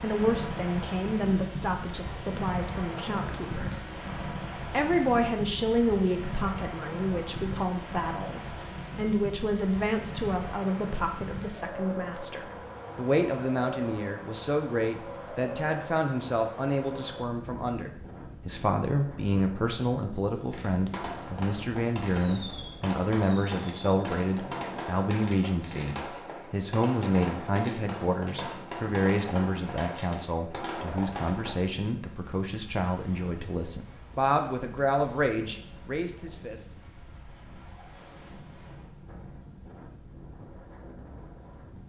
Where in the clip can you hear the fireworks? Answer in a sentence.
You can hear the fireworks from 20.4 to 31.6 s.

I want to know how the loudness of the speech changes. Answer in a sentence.
The volume of the speech stays about the same.